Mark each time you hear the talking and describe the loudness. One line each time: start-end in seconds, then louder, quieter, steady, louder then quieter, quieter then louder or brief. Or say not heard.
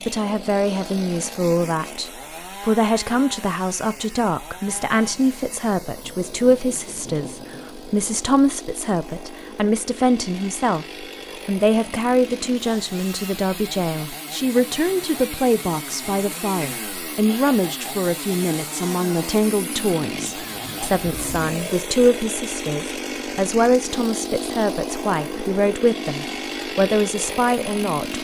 0.1-28.1 steady.